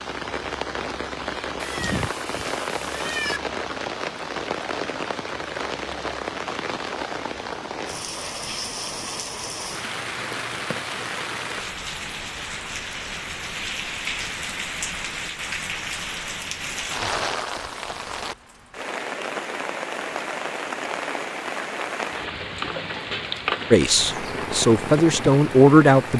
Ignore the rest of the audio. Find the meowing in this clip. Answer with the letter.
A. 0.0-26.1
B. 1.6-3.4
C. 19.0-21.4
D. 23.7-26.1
B.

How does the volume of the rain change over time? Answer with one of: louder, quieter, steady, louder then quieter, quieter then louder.
steady.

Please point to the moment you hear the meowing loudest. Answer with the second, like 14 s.
3 s.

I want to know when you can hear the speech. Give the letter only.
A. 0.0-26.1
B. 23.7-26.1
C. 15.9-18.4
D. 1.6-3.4
B.